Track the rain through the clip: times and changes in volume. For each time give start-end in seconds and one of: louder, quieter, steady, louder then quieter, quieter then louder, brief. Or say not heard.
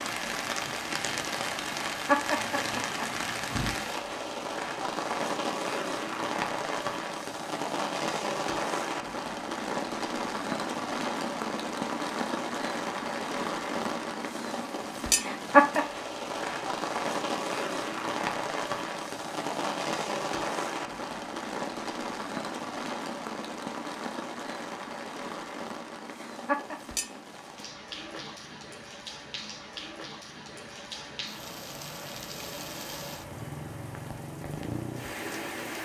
0.0-35.8 quieter.